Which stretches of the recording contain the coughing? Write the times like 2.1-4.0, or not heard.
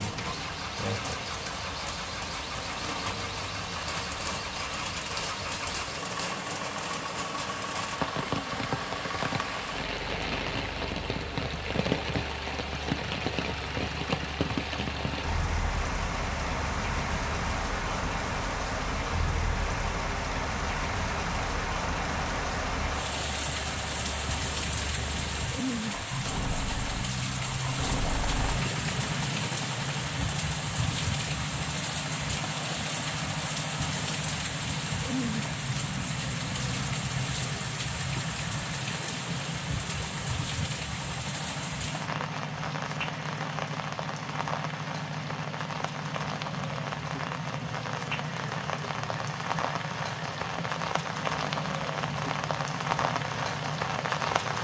not heard.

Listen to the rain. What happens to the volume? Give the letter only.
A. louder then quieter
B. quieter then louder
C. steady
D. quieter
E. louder
C.